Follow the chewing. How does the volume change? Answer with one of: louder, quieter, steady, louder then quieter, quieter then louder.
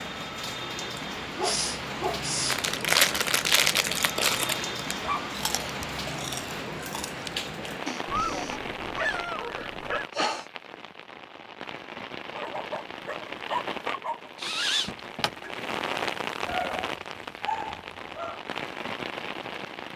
quieter.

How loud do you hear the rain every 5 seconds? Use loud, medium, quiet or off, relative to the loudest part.
loud, loud, medium, loud.